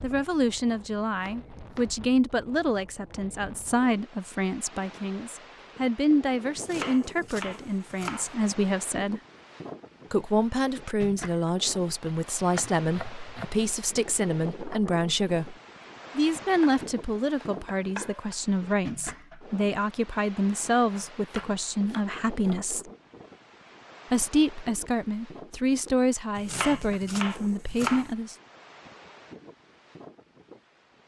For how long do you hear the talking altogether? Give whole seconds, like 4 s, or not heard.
26 s.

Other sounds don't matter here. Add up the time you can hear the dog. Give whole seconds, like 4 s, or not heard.
not heard.